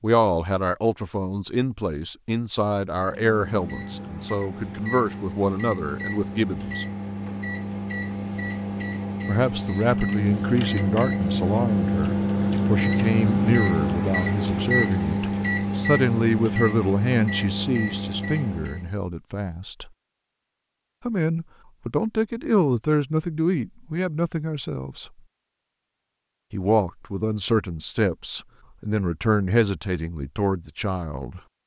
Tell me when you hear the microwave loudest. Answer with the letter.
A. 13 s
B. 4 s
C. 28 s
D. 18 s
A.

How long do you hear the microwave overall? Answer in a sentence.
You can hear the microwave for 16 seconds altogether.